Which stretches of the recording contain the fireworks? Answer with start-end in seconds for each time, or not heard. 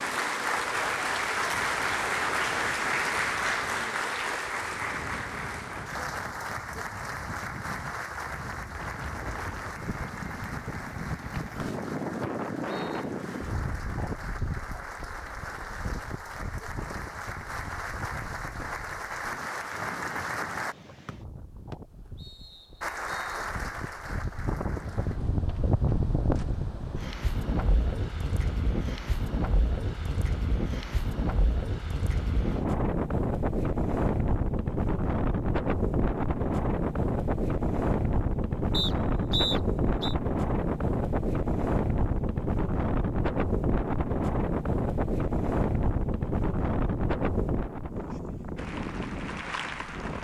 not heard.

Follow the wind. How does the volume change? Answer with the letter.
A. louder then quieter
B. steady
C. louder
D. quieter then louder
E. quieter
C.